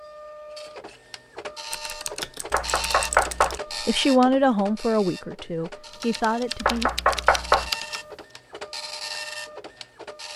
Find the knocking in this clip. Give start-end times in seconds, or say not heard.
2.5-3.6, 6.6-7.7.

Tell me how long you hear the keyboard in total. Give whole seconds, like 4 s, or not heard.
4 s.